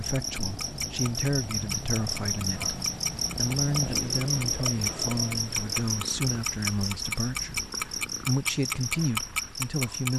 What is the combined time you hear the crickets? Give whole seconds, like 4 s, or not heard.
10 s.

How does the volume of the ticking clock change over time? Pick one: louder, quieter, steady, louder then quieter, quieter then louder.
louder.